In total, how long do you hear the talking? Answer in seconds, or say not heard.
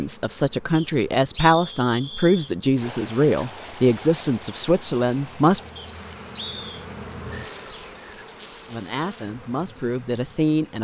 8 s.